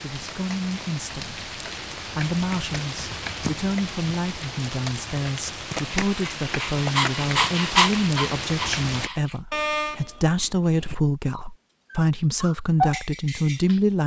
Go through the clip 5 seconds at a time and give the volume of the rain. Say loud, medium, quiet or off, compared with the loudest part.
loud, loud, off.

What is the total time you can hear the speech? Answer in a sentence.
You can hear the speech for 14 seconds altogether.